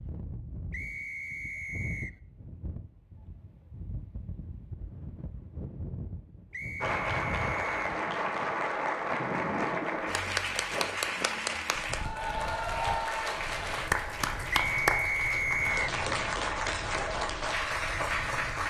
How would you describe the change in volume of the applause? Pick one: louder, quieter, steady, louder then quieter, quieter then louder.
steady.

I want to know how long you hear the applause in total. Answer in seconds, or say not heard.
12 s.